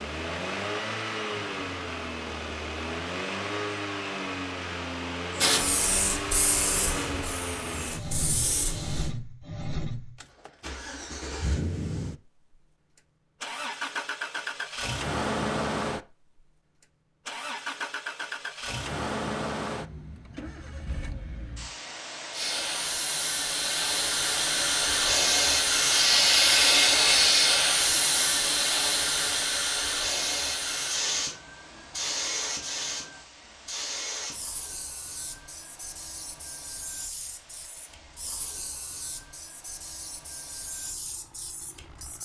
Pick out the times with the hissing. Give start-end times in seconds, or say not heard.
5.3-9.1, 22.3-42.1.